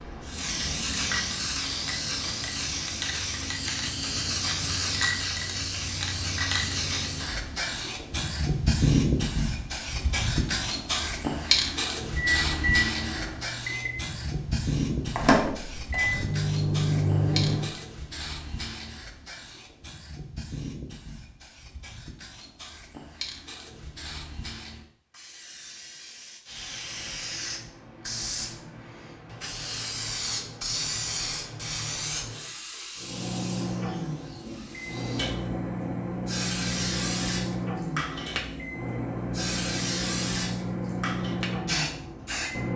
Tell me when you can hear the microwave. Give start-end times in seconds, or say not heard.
12.1-17.8, 33.0-42.7.